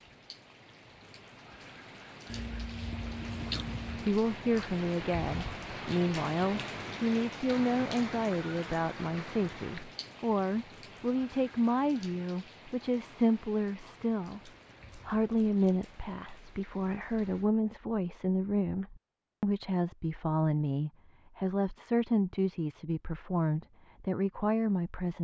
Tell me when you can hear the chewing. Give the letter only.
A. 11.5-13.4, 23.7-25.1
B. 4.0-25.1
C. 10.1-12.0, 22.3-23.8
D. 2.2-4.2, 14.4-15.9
D.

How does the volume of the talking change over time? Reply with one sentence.
The volume of the talking stays about the same.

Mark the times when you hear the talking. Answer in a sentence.
The talking can be heard from 4.0 to 25.1 s.